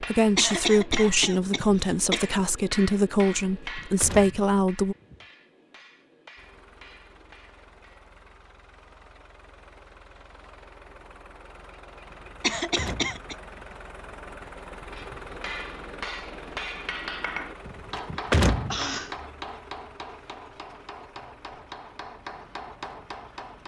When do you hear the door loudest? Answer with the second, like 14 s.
18 s.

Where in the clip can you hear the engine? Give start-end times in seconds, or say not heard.
6.3-23.6.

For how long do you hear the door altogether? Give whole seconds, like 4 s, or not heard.
4 s.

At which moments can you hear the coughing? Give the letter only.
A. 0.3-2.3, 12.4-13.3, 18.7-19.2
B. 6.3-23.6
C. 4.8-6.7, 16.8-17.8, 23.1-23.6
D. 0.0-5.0
A.